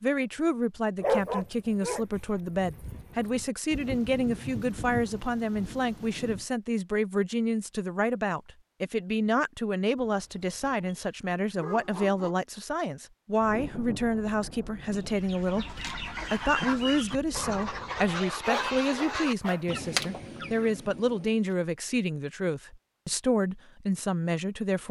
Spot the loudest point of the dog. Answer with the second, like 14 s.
1 s.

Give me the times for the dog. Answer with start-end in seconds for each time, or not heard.
1.0-3.5, 9.9-12.3, 18.4-19.6.